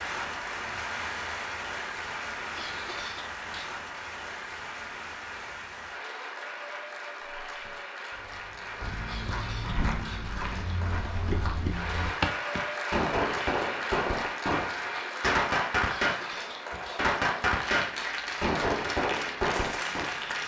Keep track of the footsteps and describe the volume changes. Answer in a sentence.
The volume of the footsteps goes up.